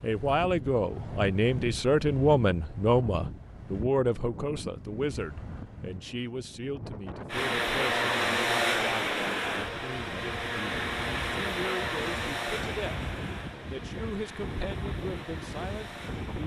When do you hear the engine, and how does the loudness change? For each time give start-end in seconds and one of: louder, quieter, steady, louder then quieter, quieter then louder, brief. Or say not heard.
7.3-16.4 quieter.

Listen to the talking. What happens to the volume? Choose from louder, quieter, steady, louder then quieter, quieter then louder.
quieter.